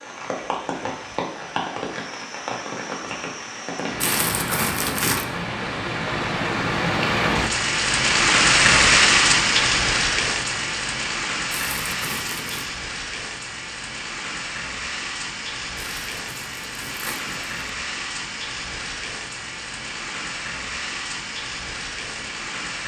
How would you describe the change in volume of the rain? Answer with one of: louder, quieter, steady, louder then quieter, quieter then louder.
louder then quieter.